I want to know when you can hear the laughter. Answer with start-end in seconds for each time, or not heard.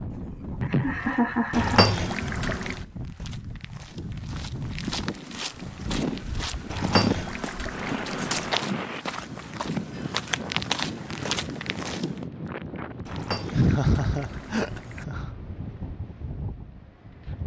0.1-1.9, 13.5-15.3.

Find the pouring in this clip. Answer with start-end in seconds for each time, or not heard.
1.5-2.8, 6.7-8.6, 13.1-15.1.